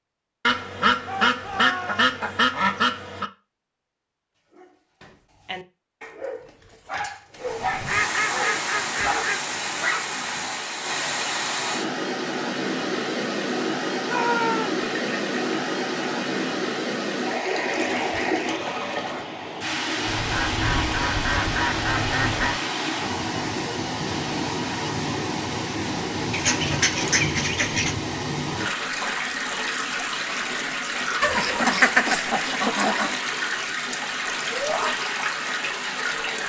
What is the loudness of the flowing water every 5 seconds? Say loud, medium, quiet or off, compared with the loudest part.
off, loud, loud, loud, loud, loud, loud, loud.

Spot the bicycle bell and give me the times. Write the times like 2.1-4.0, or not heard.
not heard.